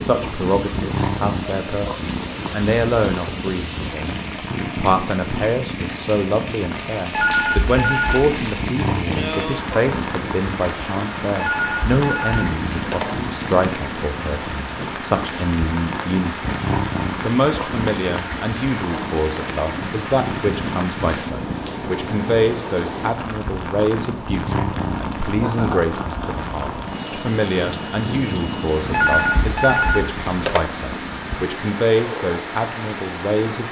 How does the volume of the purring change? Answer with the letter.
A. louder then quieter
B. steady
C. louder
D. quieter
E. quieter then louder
B.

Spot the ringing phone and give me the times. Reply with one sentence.
The ringing phone can be heard from 7.1 to 8.4 s, from 11.4 to 13.1 s and from 28.9 to 30.6 s.